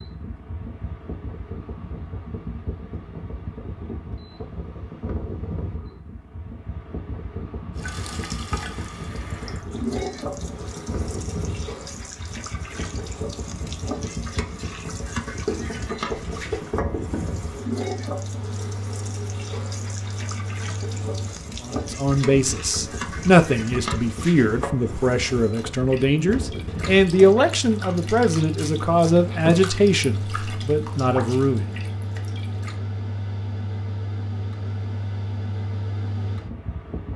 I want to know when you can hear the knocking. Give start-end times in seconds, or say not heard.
15.4-17.3.